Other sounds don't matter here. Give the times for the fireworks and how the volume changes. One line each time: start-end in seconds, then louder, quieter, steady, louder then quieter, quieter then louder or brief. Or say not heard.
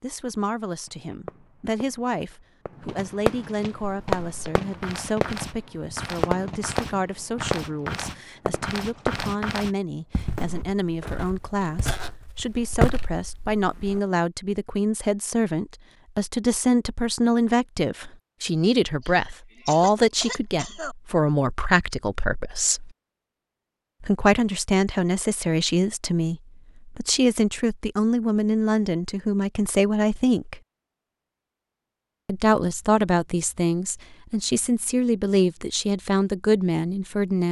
0.8-9.4 louder then quieter
10.3-11.2 brief.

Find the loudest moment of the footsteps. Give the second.
13 s.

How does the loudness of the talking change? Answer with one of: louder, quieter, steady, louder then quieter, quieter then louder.
louder.